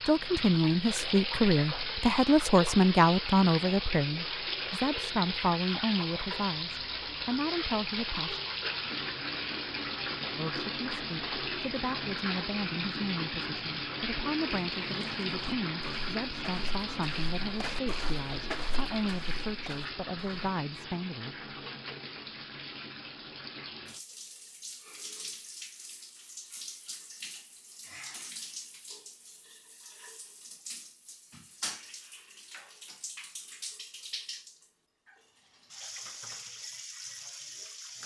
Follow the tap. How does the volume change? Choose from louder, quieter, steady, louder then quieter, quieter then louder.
quieter.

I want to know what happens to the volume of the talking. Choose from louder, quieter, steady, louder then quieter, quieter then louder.
quieter.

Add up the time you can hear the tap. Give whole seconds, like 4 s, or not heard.
38 s.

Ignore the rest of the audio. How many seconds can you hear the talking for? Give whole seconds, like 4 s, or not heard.
19 s.